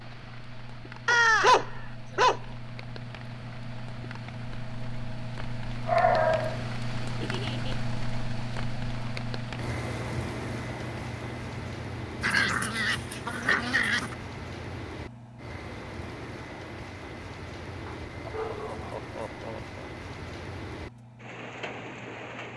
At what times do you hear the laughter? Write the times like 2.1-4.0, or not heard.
7.2-7.8, 18.3-19.8.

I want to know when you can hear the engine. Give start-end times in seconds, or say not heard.
0.0-22.5.